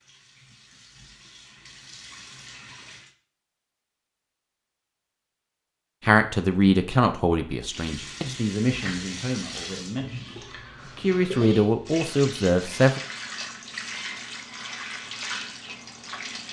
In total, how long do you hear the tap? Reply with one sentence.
You can hear the tap for 12 seconds altogether.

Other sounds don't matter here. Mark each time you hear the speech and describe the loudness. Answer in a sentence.
The speech can be heard from 6.0 to 13.0 s, getting quieter then louder.